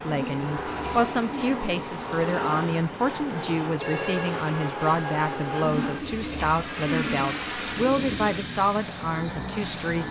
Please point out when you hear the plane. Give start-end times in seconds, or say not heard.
0.0-10.0.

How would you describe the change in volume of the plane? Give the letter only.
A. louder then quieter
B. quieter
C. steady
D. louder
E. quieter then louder
C.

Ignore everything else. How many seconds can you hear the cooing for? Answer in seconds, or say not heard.
5 s.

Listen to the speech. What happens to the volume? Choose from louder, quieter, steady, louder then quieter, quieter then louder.
steady.